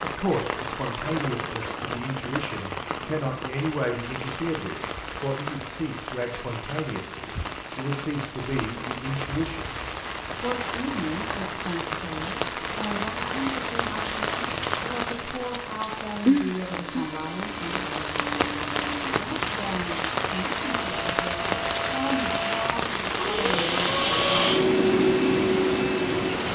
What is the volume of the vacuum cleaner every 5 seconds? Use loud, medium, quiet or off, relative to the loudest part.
off, off, off, quiet, loud, loud.